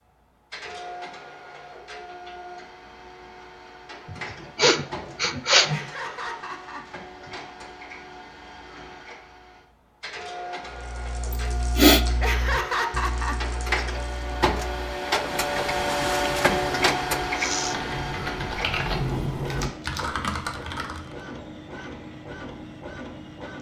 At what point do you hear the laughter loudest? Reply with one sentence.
The loudest moment of the laughter is at 13 seconds.